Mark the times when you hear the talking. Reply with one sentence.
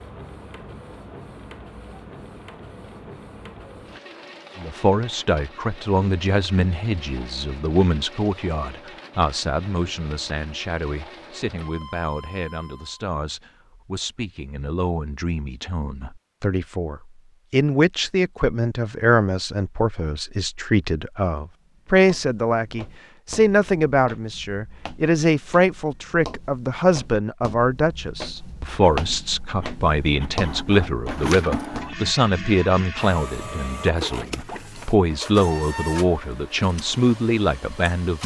You can hear the talking from 4.5 to 38.2 s.